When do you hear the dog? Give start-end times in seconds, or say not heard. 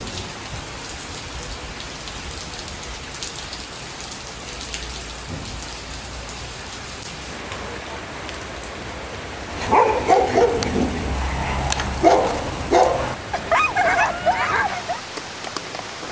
9.5-15.0.